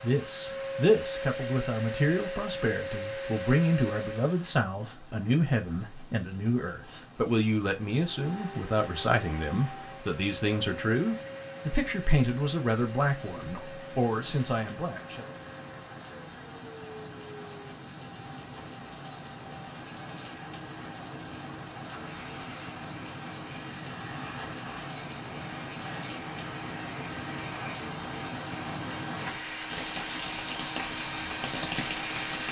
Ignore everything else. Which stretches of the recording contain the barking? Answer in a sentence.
The barking can't be heard in this clip.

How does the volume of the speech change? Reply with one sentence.
The loudness of the speech stays about the same.